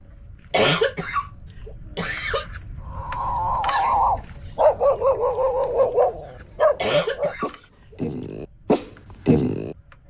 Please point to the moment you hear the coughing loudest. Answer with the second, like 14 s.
1 s.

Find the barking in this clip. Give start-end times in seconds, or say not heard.
3.0-9.8.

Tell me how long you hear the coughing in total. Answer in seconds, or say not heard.
3 s.